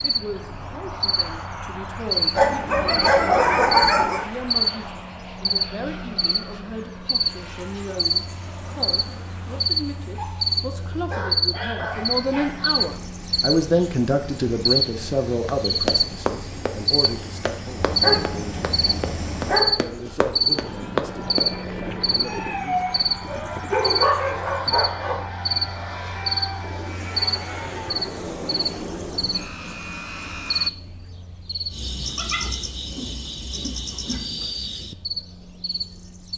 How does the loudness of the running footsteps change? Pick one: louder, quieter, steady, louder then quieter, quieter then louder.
quieter then louder.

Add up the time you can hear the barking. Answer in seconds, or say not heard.
12 s.